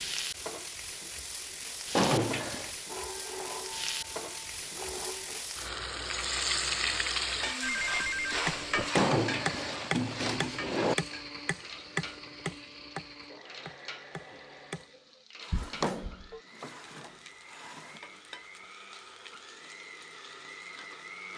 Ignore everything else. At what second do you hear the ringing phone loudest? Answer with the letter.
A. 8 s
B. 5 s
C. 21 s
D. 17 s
A.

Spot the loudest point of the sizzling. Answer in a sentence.
The loudest moment of the sizzling is at 7 seconds.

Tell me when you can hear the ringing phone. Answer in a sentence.
You can hear the ringing phone from 2.9 to 5.5 s, from 7.6 to 8.9 s and from 15.5 to 16.4 s.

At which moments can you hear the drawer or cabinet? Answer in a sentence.
You can hear the drawer or cabinet from 1.9 to 2.8 s, from 8.9 to 10.9 s and from 15.4 to 18.0 s.